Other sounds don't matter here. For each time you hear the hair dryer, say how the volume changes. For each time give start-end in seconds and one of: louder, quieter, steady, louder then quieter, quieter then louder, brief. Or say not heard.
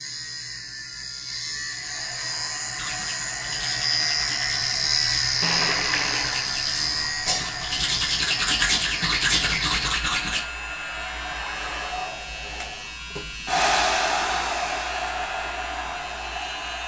1.6-16.8 louder.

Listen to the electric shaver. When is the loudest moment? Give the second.
5 s.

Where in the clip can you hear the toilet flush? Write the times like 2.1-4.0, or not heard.
5.4-6.5.